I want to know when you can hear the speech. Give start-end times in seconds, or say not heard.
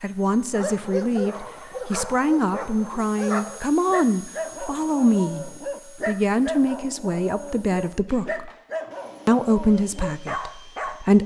0.0-8.5, 9.2-11.2.